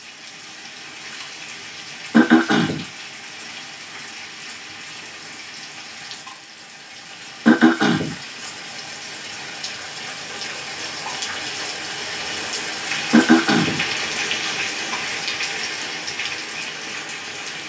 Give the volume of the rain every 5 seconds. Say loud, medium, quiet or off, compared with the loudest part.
medium, medium, loud, loud.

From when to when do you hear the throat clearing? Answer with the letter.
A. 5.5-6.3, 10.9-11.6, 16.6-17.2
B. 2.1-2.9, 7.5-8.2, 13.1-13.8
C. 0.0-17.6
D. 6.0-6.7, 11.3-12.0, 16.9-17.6
B.